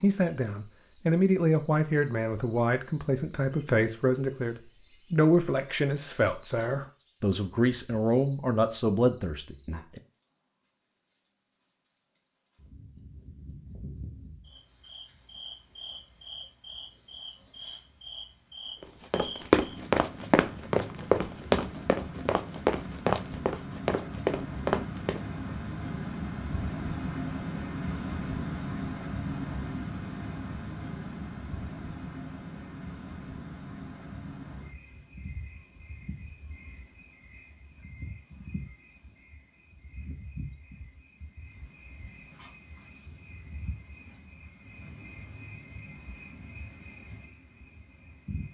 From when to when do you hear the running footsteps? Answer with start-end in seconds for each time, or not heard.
19.1-25.2.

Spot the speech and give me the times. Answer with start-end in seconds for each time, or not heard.
0.0-10.0.